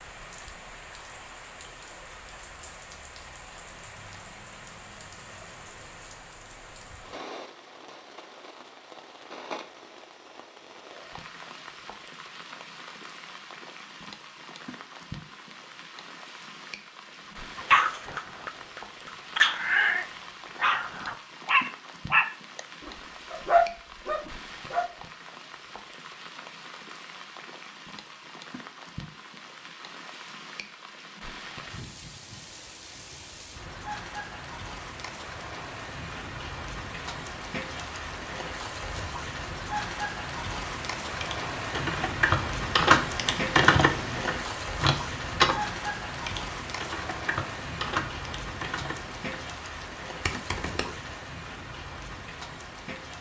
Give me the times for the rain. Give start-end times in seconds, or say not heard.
0.0-53.1.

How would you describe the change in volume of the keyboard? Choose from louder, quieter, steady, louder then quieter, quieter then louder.
quieter.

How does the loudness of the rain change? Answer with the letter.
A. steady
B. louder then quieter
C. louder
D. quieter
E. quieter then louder
C.